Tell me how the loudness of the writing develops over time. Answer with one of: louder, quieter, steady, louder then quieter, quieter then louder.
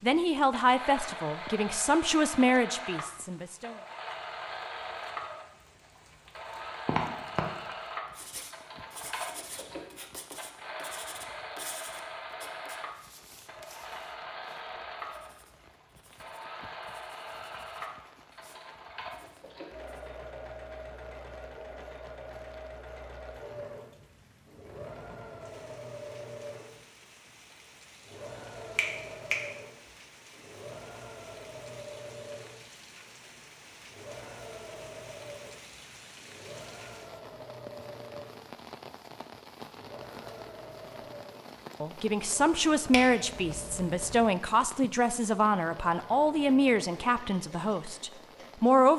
quieter.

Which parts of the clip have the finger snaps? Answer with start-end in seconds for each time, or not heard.
6.8-7.5, 28.8-29.4, 42.9-44.2.